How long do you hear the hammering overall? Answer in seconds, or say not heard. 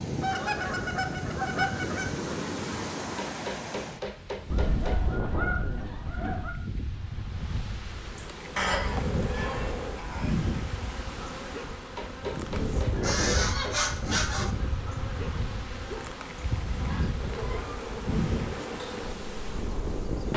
4 s.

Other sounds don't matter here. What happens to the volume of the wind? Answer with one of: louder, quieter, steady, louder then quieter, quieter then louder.
steady.